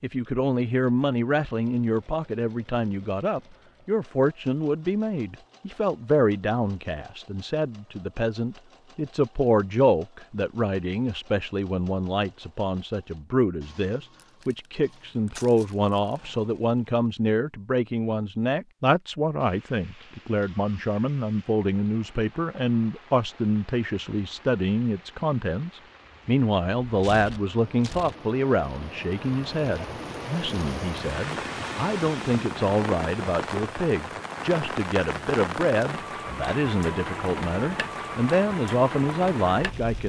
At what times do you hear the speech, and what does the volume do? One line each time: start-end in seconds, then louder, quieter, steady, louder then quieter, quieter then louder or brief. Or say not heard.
0.0-40.0 steady.